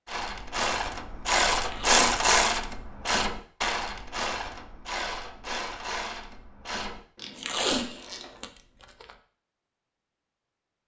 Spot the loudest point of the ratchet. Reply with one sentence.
The volume of the ratchet peaks at 2 seconds.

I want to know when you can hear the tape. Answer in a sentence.
The tape can be heard from 1.6 to 2.2 s and from 7.3 to 9.1 s.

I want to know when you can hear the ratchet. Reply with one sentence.
You can hear the ratchet from 0.1 to 8.4 s.